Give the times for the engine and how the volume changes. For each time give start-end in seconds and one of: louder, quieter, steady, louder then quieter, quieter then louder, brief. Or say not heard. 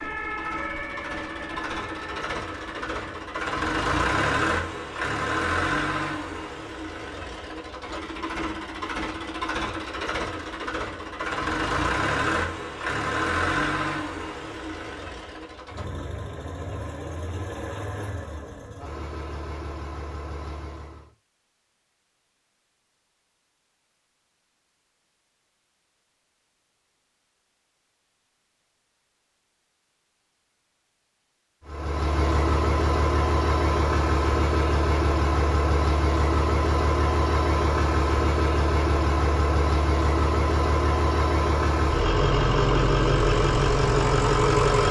0.0-21.1 quieter
31.6-44.8 steady.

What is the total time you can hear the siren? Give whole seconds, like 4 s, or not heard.
3 s.